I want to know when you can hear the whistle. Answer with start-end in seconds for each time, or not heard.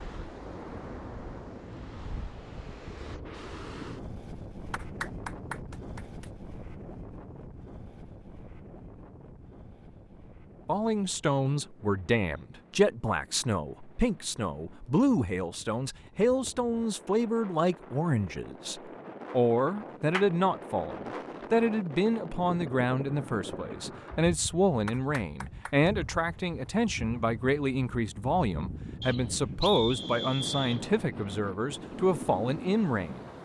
29.0-30.8.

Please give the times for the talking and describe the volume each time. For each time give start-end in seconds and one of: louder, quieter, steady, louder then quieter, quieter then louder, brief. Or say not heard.
10.7-33.2 steady.